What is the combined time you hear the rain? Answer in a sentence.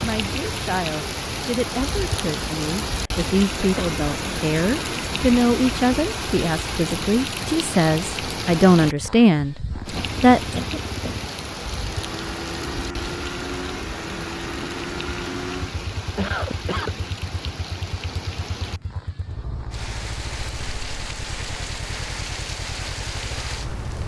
The rain can be heard for 24 seconds in total.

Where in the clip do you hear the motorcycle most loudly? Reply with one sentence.
The volume of the motorcycle peaks at 15 seconds.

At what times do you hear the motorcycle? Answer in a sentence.
The motorcycle can be heard from 9.7 to 24.0 s.